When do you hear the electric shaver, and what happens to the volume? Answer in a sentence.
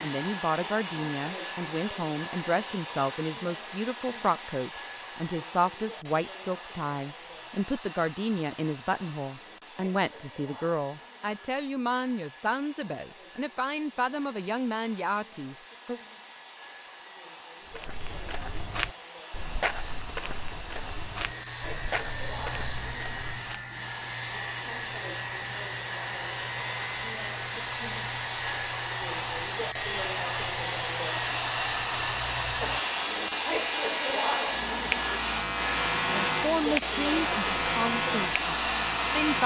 The electric shaver can be heard from 21.1 to 39.4 s, at a steady volume.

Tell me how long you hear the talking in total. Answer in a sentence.
You can hear the talking for 19 seconds altogether.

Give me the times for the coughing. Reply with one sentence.
The coughing can't be heard in this clip.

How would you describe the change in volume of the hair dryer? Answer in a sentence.
The loudness of the hair dryer goes down, then up.